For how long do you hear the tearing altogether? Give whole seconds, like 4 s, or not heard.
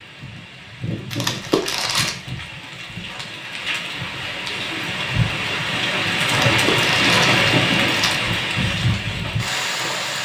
3 s.